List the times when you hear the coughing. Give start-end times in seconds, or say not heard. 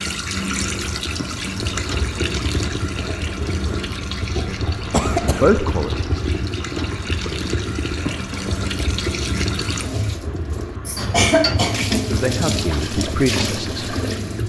4.9-5.5, 10.8-12.2.